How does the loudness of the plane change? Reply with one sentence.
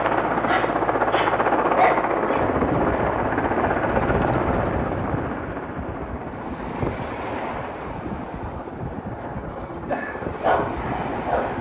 The loudness of the plane goes down.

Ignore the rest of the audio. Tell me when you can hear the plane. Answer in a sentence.
You can hear the plane from 0.0 to 11.5 s.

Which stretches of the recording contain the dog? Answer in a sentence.
You can hear the dog from 0.0 to 2.4 s and from 9.2 to 11.5 s.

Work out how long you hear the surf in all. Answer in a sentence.
You can hear the surf for 9 seconds altogether.